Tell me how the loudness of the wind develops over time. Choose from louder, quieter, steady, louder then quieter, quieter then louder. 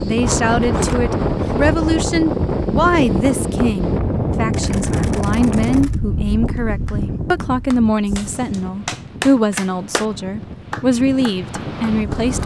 quieter.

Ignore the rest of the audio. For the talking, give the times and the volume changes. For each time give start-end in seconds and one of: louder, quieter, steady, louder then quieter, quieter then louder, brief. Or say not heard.
0.0-12.4 steady.